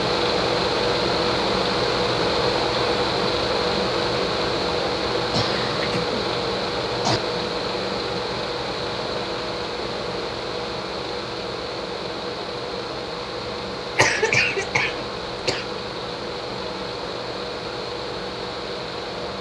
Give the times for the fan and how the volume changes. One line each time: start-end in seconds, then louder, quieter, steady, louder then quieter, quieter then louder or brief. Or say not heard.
0.0-19.3 quieter.